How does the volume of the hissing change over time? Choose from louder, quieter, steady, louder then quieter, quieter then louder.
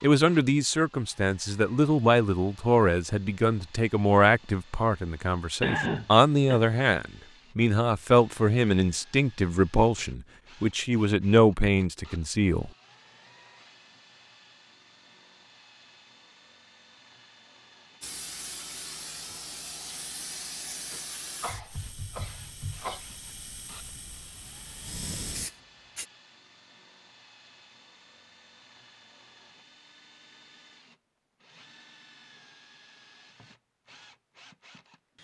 quieter then louder.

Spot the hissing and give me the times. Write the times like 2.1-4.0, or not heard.
18.0-26.1.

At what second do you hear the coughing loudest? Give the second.
6 s.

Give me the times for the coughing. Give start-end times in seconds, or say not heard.
5.6-6.6, 21.4-23.0.